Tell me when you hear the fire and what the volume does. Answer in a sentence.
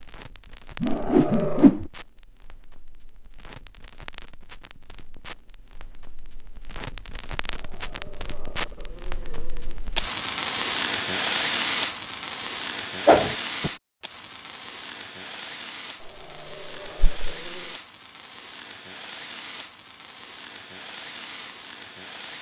The fire can be heard from 0.0 to 22.3 s, getting louder then quieter.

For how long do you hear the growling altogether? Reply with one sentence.
The growling can be heard for 5 seconds in total.